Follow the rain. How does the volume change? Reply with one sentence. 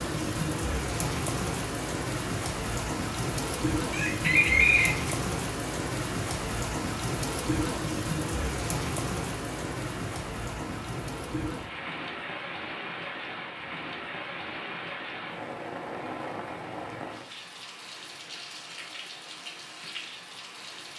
The loudness of the rain goes down.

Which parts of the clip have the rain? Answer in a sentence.
The rain can be heard from 0.0 to 20.9 s.